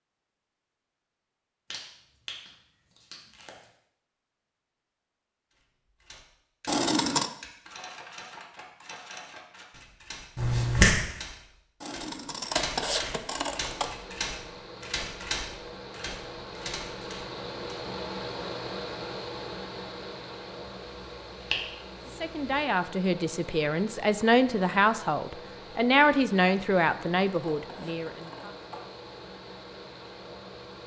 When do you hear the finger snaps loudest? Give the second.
11 s.